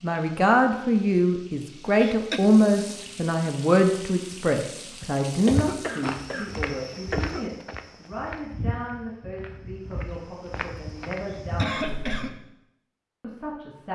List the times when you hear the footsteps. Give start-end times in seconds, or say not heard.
5.5-12.2.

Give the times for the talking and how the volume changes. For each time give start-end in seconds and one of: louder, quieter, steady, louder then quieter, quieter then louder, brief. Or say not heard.
0.0-12.4 quieter
13.2-13.9 brief.